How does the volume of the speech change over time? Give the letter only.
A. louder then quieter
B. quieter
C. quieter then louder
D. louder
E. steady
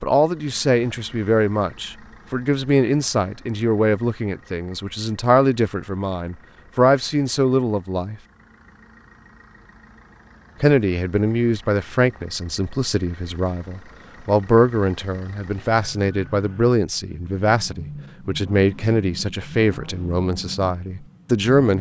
E.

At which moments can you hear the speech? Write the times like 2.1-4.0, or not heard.
0.0-8.2, 10.6-21.7.